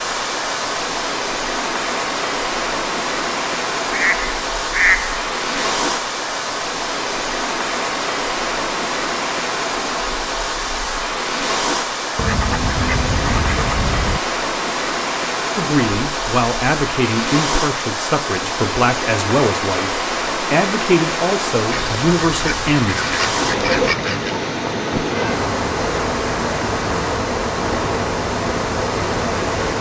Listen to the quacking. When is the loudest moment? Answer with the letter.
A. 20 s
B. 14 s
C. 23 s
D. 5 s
D.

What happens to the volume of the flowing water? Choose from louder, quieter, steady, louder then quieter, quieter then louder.
steady.